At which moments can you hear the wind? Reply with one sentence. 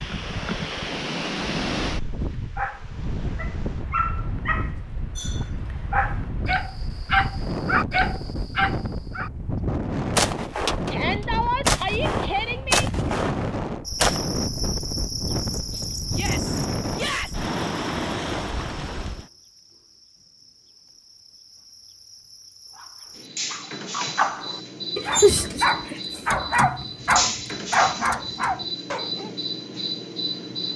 You can hear the wind from 0.0 to 19.3 s.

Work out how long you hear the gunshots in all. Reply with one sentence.
You can hear the gunshots for 4 seconds altogether.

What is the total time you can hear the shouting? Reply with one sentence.
The shouting can be heard for 3 seconds in total.